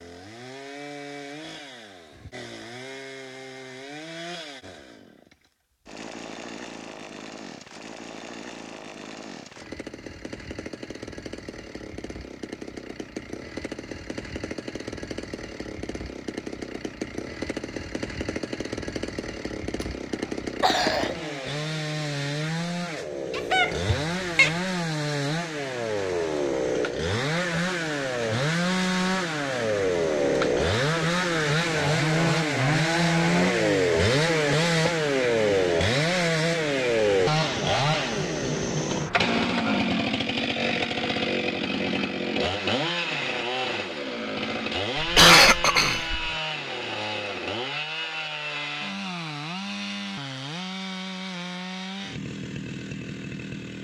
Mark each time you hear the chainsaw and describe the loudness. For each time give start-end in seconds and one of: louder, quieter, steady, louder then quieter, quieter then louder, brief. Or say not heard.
0.0-53.7 louder then quieter.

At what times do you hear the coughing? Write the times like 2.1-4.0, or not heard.
20.6-21.1, 45.0-46.3.